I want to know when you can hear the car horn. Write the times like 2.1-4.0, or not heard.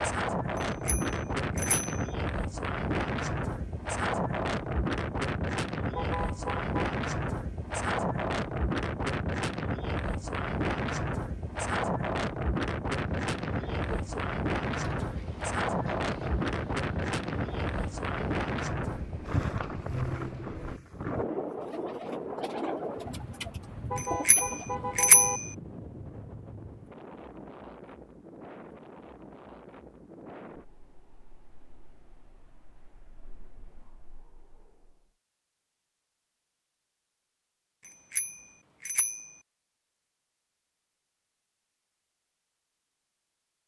6.0-6.7, 23.9-25.4.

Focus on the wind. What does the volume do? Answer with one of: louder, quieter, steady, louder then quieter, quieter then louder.
quieter.